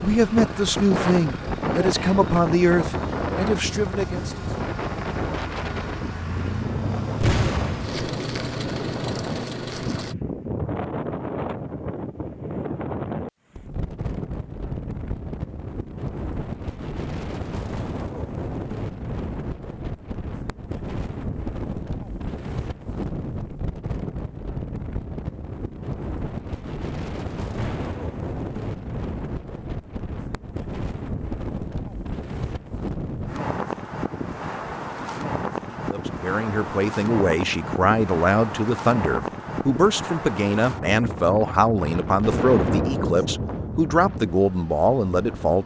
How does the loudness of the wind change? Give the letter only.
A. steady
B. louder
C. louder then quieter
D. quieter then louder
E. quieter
A.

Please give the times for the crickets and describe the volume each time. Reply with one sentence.
The crickets can't be heard in this clip.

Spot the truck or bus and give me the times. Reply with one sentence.
You can hear the truck or bus from 0.0 to 10.2 s.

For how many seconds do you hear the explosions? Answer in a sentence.
The explosions can be heard for 3 seconds in total.